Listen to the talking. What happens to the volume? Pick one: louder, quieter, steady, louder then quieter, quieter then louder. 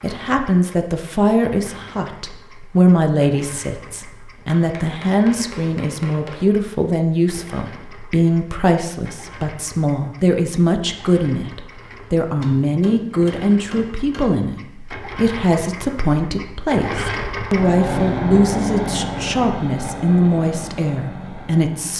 steady.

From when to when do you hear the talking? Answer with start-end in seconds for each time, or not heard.
0.0-21.9.